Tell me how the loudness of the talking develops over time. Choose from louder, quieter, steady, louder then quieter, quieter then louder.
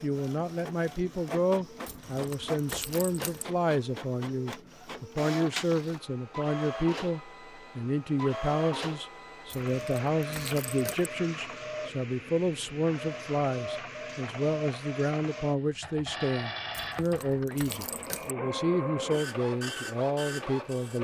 steady.